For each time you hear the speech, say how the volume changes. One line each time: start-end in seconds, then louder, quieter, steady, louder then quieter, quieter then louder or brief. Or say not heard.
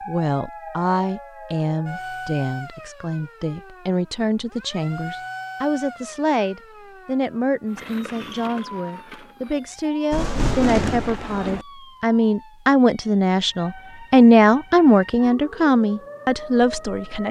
0.0-17.2 louder.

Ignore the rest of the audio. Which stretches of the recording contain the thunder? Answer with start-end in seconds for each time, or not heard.
10.1-11.7.